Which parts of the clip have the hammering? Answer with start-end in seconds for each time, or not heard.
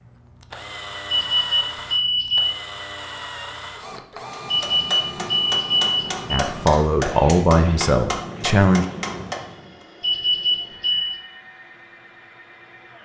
4.2-9.8.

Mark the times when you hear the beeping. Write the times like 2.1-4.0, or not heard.
1.1-2.5, 4.5-6.4, 10.0-11.2.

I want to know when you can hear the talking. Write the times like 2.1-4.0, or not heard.
6.3-8.8.